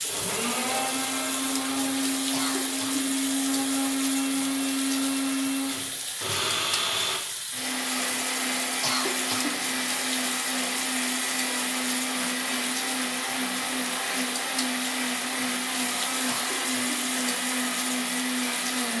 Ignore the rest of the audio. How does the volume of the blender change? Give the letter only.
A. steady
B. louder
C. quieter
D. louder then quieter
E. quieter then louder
A.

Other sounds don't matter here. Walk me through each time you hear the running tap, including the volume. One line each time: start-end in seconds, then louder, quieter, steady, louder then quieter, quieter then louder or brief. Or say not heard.
0.0-18.9 steady.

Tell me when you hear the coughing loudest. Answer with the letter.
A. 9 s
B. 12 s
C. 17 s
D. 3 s
A.